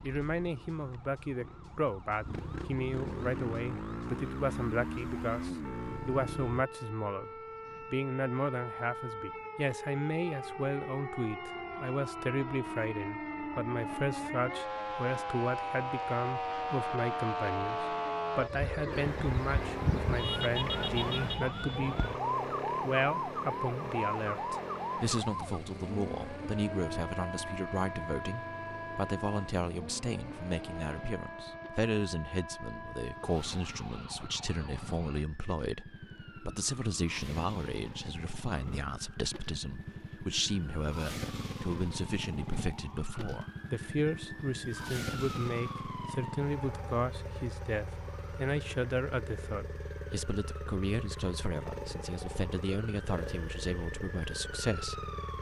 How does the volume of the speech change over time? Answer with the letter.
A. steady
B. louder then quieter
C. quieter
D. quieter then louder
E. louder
A.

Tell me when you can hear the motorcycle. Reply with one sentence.
The motorcycle can be heard from 0.0 to 6.7 s and from 18.9 to 55.3 s.